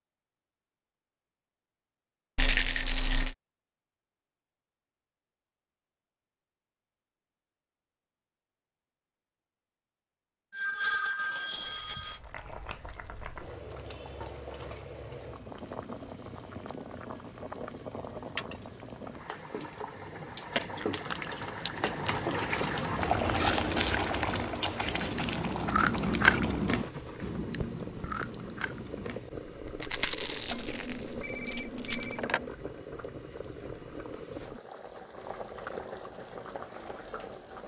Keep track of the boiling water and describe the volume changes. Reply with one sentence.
The loudness of the boiling water goes up, then down.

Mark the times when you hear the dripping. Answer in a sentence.
You can't hear the dripping here.